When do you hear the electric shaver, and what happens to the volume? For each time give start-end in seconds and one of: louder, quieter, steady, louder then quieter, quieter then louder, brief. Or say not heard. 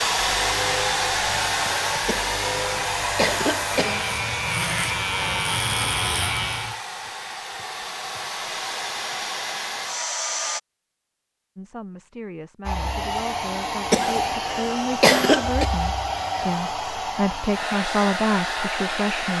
0.0-6.8 louder.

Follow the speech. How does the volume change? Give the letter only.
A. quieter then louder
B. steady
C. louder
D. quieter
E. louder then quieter
C.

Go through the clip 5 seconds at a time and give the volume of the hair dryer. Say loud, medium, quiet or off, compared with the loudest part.
loud, medium, loud, loud.